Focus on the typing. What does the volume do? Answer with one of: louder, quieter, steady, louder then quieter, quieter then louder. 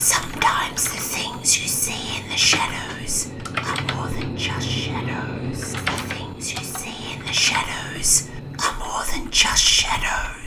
louder then quieter.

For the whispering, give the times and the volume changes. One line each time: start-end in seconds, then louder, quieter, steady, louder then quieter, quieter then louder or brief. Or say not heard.
0.0-10.4 quieter then louder.